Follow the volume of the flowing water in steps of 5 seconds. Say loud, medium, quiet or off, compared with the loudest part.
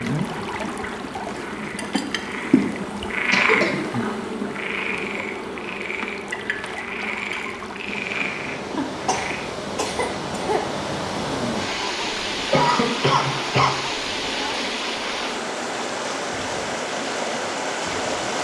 medium, medium, loud, loud.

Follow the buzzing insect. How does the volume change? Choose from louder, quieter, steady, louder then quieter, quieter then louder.
quieter.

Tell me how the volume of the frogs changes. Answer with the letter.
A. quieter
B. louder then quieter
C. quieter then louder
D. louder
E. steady
B.